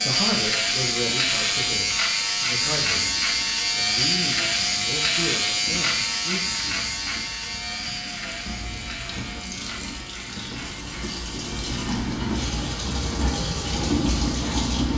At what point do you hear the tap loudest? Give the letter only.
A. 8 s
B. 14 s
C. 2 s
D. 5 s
B.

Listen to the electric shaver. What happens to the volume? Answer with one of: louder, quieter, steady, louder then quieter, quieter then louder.
quieter.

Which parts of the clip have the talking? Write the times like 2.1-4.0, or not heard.
0.1-6.5.